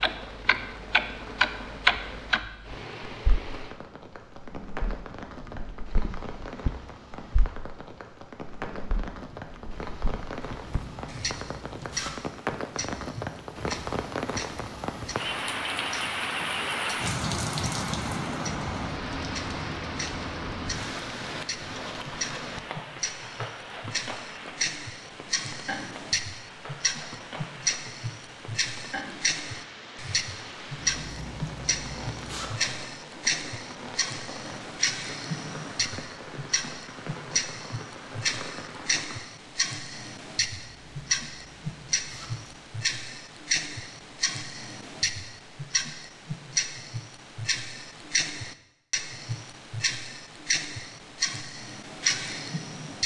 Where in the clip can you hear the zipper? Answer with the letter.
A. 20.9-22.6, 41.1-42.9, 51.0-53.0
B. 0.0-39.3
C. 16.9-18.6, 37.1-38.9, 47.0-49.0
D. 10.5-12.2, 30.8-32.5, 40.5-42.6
D.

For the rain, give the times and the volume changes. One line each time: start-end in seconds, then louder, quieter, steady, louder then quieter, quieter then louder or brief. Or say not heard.
0.0-39.3 louder then quieter.